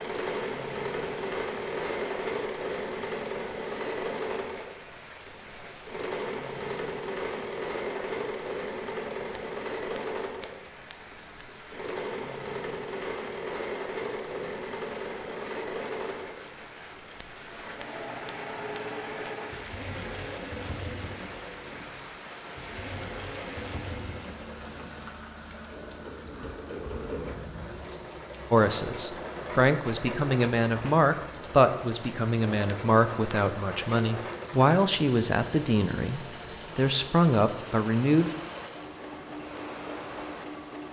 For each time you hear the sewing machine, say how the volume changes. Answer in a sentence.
The sewing machine can be heard from 0.0 to 40.8 s, getting quieter.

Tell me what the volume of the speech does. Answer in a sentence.
The volume of the speech stays about the same.